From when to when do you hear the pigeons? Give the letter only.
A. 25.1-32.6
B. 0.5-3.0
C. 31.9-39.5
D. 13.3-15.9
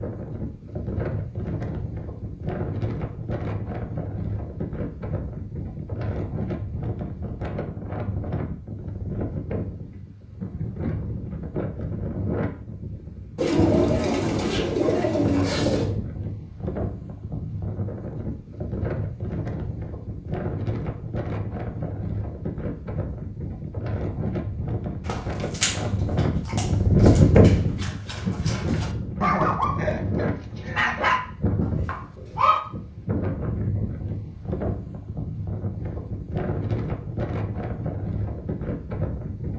D.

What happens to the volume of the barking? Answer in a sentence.
The volume of the barking goes down, then up.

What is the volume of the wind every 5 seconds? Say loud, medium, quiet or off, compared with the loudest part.
medium, medium, medium, medium, medium, loud, medium, medium.